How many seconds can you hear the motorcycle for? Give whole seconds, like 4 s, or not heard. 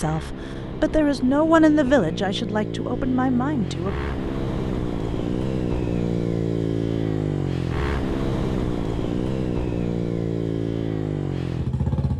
12 s.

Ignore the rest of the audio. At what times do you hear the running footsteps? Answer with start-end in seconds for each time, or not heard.
not heard.